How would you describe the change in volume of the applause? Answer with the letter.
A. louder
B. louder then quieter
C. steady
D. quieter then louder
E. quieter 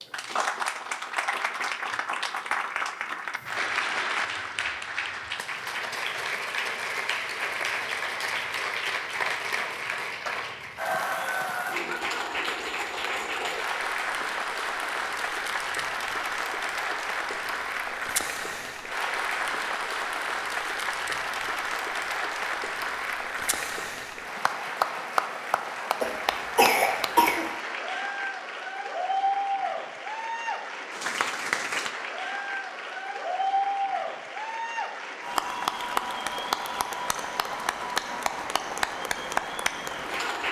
C.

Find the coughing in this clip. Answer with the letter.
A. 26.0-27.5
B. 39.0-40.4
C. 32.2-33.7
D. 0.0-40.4
A.